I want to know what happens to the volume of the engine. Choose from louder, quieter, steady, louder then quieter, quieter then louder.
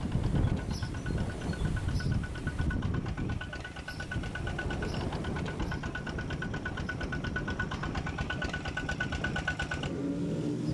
louder.